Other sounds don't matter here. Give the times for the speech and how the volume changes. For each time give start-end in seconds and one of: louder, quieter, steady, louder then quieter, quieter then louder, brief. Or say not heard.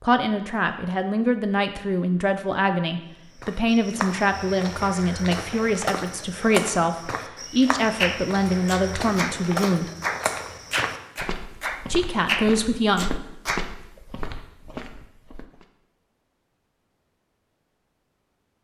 0.0-9.9 steady
11.9-13.2 brief.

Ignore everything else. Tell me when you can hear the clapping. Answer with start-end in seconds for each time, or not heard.
8.0-13.7.